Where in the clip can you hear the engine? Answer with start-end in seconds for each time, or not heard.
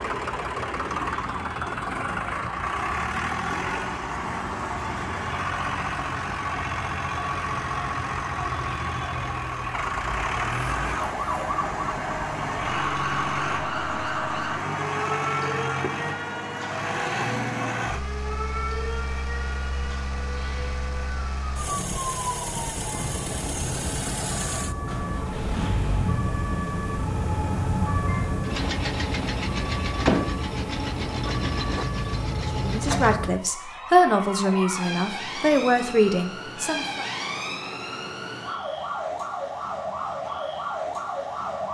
0.0-33.1.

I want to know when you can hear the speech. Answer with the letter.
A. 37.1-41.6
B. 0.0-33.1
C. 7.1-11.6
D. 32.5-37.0
D.